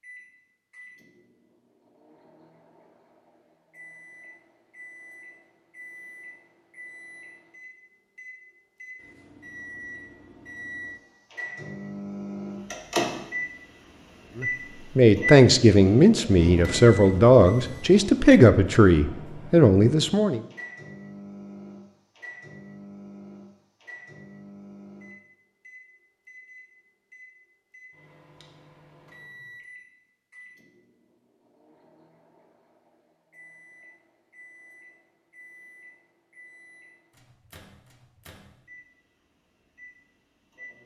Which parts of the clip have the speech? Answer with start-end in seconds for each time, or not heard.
14.3-20.4.